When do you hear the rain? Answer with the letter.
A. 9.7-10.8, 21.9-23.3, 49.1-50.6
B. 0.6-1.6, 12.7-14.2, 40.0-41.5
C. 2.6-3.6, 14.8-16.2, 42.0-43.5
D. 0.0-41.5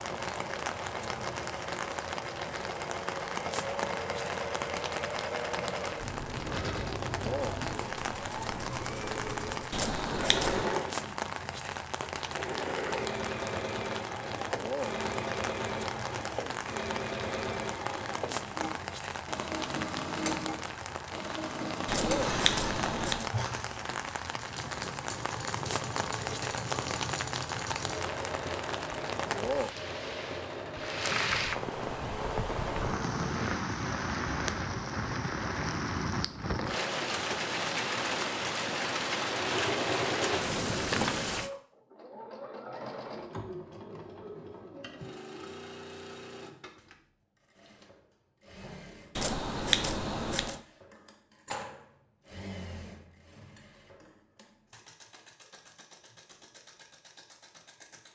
D.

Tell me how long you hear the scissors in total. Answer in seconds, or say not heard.
4 s.